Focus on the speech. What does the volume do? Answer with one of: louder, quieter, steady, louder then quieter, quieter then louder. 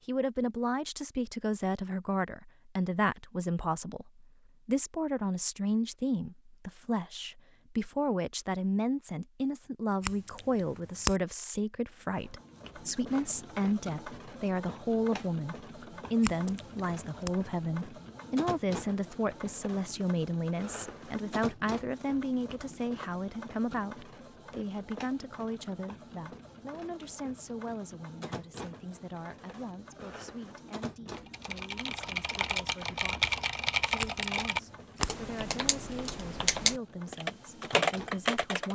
quieter.